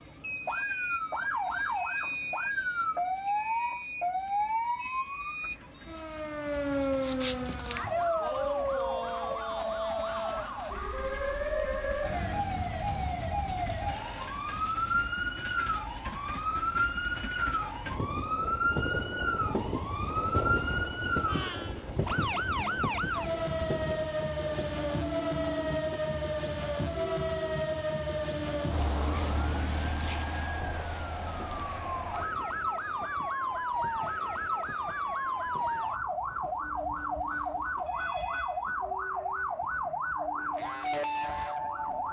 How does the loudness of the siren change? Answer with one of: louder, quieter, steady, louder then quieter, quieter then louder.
steady.